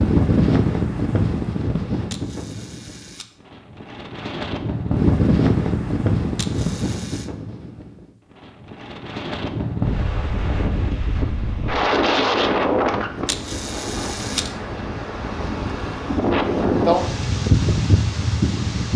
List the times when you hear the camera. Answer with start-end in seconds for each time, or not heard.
2.1-3.2, 6.3-7.3, 13.2-14.5.